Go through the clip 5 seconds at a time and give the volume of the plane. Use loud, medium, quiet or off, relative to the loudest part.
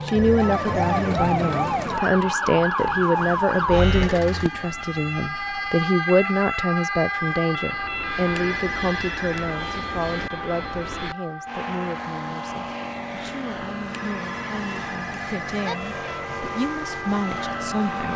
off, loud, loud, loud.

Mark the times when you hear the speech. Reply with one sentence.
The speech can be heard from 0.1 to 18.1 s.